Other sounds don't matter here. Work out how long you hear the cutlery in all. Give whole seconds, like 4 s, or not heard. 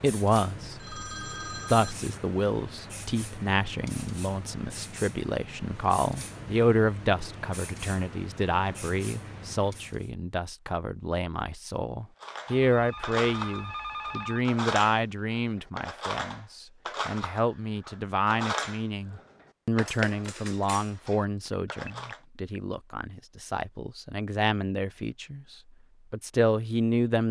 10 s.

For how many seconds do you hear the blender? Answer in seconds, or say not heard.
not heard.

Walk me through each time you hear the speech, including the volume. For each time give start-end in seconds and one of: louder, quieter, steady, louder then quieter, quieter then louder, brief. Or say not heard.
0.0-27.2 steady.